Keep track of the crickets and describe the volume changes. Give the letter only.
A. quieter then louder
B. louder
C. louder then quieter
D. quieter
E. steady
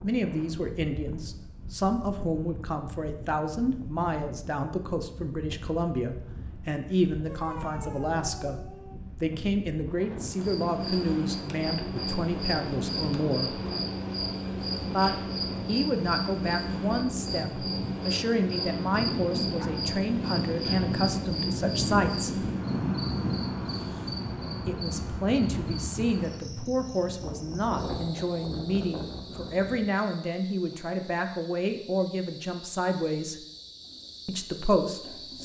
D.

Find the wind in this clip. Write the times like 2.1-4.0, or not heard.
0.0-29.9.